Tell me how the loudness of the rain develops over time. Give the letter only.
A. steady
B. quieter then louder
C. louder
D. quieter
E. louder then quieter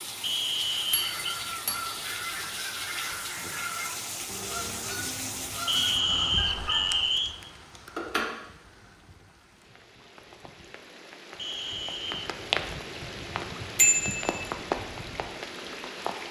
B.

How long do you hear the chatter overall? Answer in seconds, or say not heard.
not heard.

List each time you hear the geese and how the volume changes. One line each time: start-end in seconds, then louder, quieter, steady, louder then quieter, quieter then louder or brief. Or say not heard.
0.8-7.0 steady.